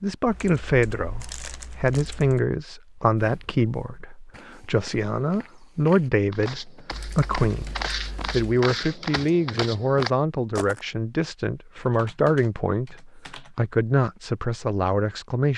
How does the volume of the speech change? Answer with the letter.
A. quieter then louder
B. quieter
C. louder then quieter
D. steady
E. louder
D.